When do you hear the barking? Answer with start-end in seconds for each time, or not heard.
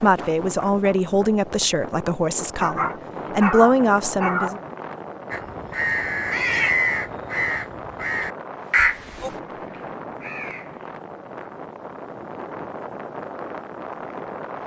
2.6-4.6.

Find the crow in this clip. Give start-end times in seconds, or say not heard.
5.3-10.8.